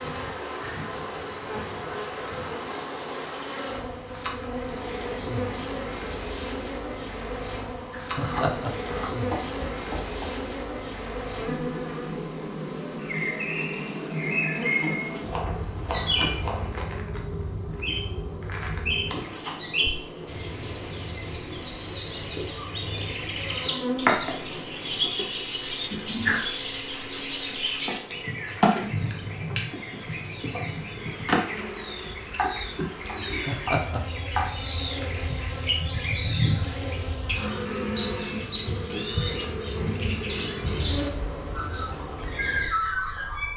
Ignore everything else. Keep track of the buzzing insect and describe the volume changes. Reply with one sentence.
The volume of the buzzing insect stays about the same.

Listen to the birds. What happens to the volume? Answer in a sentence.
The volume of the birds stays about the same.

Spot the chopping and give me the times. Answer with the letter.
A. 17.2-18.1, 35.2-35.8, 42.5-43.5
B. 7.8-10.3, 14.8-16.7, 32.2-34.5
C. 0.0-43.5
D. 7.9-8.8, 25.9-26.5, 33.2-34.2
B.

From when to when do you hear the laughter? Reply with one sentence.
You can hear the laughter from 7.9 to 8.8 s, from 25.9 to 26.5 s and from 33.2 to 34.2 s.